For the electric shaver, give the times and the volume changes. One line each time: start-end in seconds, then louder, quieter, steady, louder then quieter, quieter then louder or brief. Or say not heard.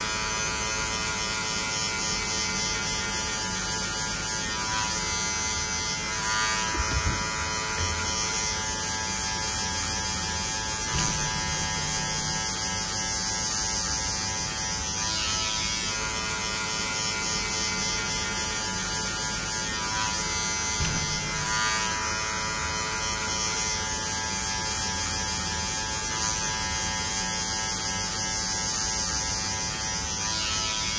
0.0-30.9 steady.